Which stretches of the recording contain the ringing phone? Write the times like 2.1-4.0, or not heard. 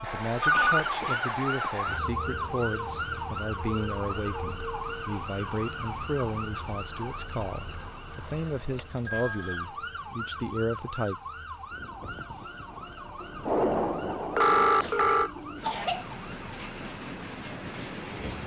0.4-0.8, 8.2-9.7, 13.4-15.3.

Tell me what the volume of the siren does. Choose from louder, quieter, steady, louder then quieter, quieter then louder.
quieter.